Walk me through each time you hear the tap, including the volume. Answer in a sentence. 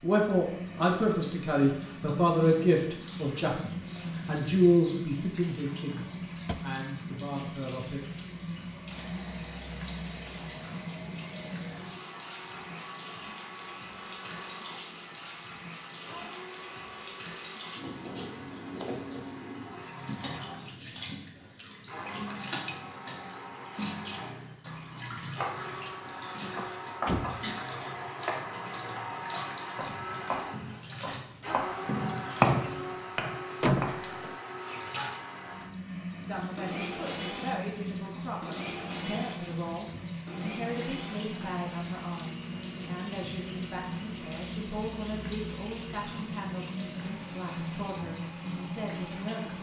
You can hear the tap from 0.0 to 49.5 s, at a steady volume.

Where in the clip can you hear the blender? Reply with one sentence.
The blender can be heard from 8.9 to 49.5 s.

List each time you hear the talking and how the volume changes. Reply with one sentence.
The talking can be heard from 0.0 to 8.1 s, getting quieter; and from 36.2 to 49.5 s, at a steady volume.